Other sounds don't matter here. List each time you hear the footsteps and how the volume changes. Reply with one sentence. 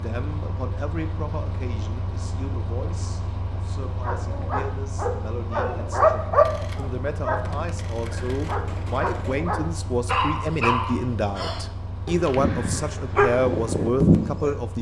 The footsteps can't be heard in this clip.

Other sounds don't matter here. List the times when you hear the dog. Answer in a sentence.
You can hear the dog from 4.0 to 14.6 s.